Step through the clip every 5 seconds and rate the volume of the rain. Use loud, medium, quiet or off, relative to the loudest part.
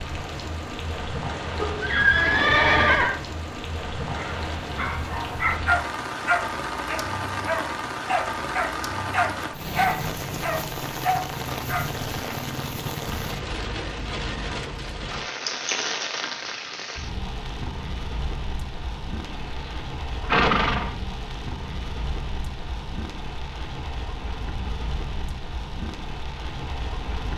loud, loud, loud, loud, medium, medium.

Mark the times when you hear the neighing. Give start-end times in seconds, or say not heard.
1.6-3.2, 19.2-20.9.